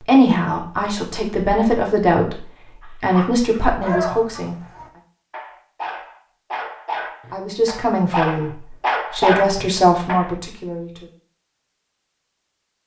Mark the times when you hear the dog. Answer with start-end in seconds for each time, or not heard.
3.1-10.3.